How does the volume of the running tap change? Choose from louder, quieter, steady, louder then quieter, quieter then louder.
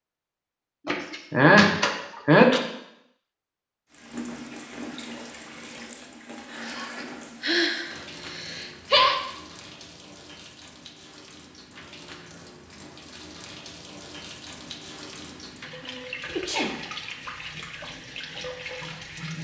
quieter then louder.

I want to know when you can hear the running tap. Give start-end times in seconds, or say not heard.
3.9-19.3.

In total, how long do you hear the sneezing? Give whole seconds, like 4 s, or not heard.
5 s.